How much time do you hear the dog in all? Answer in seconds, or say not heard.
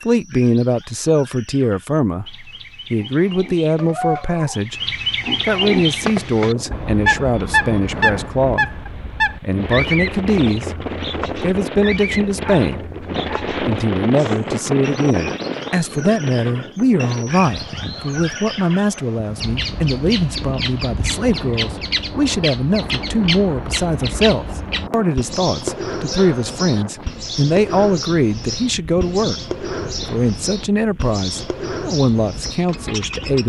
3 s.